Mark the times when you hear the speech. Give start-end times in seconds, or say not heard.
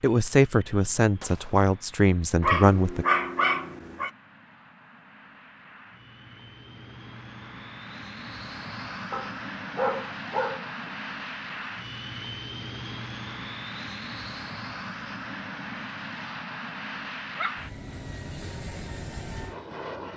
0.0-3.0.